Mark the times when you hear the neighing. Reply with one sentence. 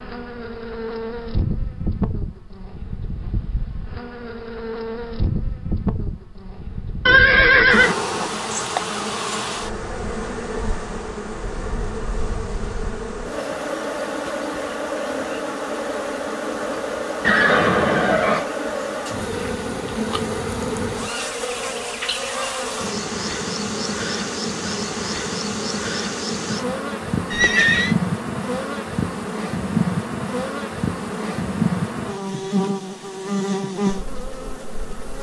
The neighing can be heard from 7.0 to 8.0 s, from 17.2 to 18.4 s and from 27.3 to 27.9 s.